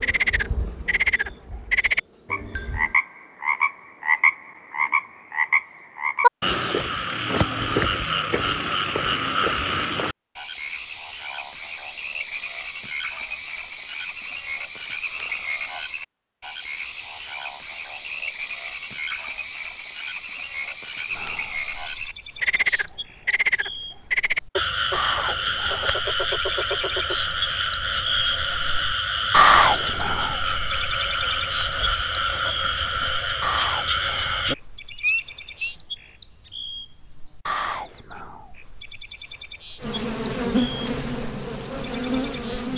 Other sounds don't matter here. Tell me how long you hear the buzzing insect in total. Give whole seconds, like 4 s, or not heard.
6 s.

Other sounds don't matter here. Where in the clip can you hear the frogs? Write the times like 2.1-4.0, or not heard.
0.0-35.8.